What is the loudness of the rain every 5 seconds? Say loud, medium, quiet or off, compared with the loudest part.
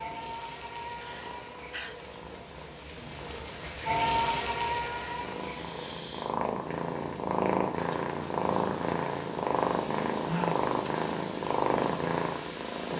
loud, medium, medium.